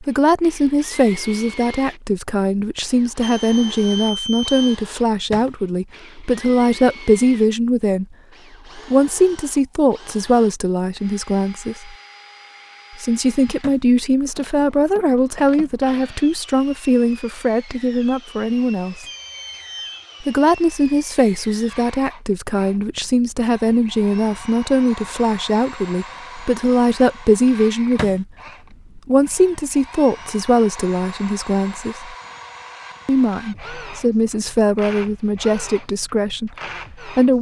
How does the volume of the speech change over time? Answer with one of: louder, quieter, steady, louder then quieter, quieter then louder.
steady.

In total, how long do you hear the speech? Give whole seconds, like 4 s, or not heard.
33 s.